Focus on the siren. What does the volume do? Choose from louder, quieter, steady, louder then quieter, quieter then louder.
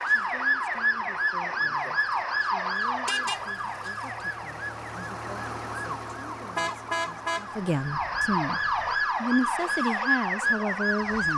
quieter then louder.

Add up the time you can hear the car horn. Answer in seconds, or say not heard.
3 s.